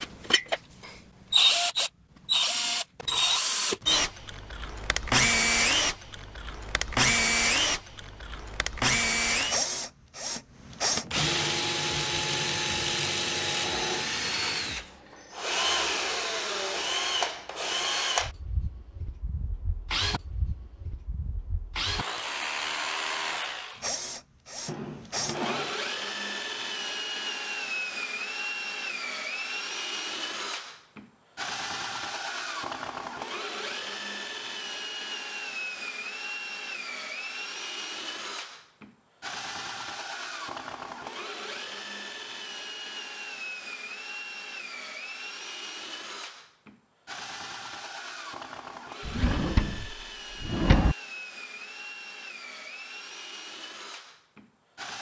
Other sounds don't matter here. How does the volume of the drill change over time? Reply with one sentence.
The volume of the drill goes down.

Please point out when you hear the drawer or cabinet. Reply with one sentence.
You can hear the drawer or cabinet from 24.6 to 25.8 s and from 49.0 to 51.0 s.